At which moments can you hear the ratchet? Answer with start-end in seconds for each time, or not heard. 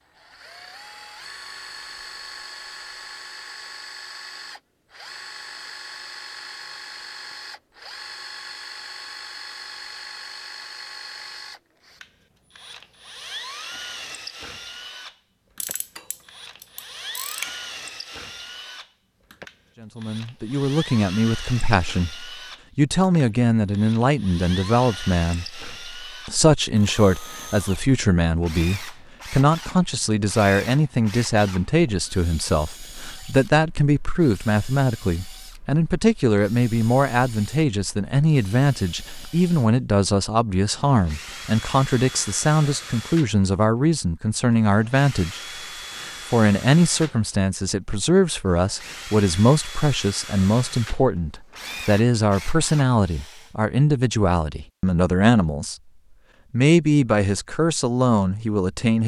15.6-17.6.